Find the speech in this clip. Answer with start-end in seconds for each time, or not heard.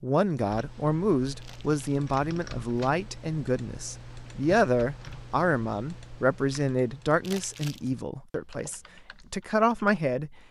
0.0-10.3.